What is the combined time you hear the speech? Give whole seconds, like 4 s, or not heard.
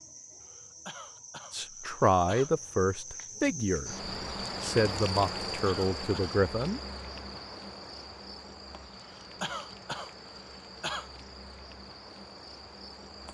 5 s.